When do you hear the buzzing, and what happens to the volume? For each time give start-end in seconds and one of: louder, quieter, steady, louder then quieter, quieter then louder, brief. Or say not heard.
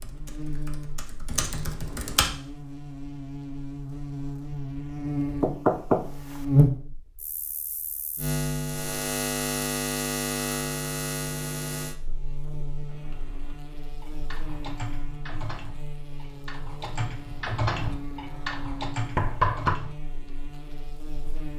0.0-21.5 louder then quieter.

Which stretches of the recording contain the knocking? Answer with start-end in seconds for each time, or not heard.
5.4-6.4, 19.1-19.8.